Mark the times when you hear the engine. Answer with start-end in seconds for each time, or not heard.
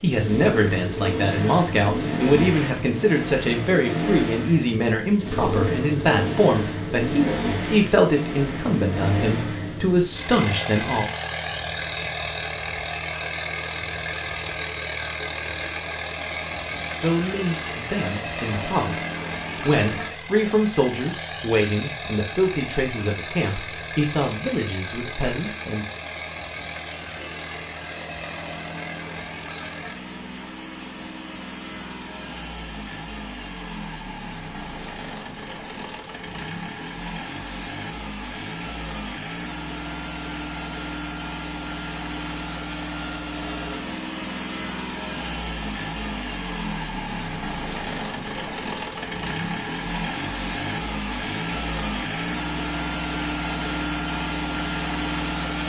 0.0-55.6.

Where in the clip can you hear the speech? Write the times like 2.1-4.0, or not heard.
0.0-11.1, 17.0-25.9.